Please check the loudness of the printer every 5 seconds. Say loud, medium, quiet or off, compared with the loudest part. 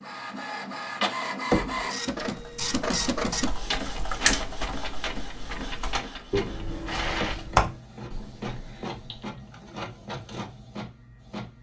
loud, medium, medium.